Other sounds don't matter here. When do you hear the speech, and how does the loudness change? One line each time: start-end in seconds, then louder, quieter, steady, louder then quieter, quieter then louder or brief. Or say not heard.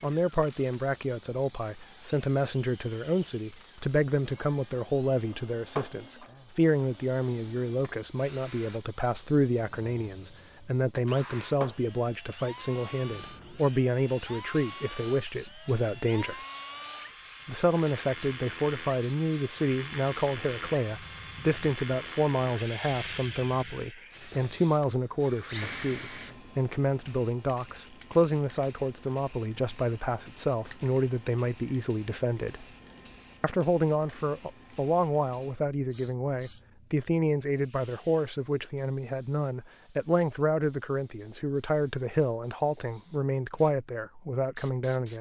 0.0-16.4 steady
17.4-32.6 steady
33.4-45.1 steady.